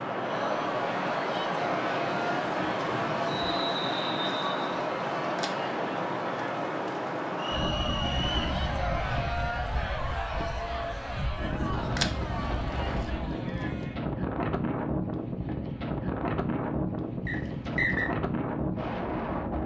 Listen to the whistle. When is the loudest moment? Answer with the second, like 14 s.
18 s.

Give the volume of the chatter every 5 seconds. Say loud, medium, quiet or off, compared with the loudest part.
loud, loud, loud, off.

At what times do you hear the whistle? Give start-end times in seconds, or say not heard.
3.2-4.8, 7.3-8.6, 17.2-18.1.